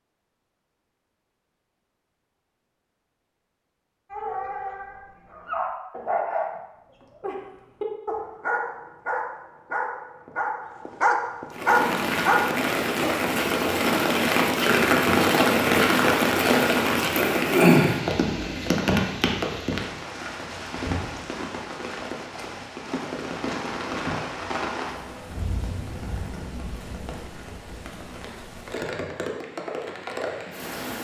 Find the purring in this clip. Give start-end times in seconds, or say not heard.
not heard.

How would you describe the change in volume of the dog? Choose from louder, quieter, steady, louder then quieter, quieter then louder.
louder.